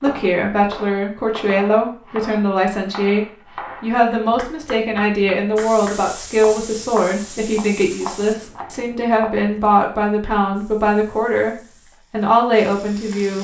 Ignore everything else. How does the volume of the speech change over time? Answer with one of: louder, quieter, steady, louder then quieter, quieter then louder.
steady.